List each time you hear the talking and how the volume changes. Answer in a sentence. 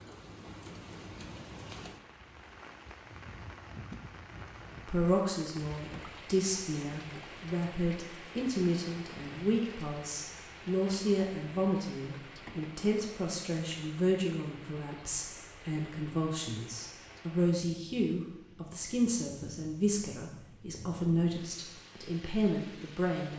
The talking can be heard from 4.8 to 23.3 s, at a steady volume.